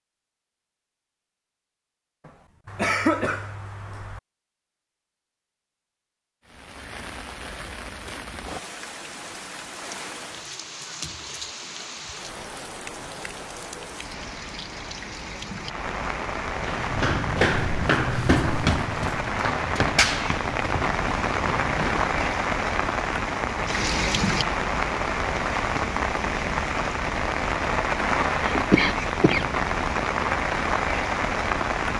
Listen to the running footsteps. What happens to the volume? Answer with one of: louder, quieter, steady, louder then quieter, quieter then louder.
quieter.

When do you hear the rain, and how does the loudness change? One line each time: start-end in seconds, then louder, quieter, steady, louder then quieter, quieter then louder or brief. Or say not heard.
6.5-31.9 louder.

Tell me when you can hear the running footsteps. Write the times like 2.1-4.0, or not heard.
16.6-22.4.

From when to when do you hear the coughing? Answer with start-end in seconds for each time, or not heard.
2.2-4.2, 28.4-29.4.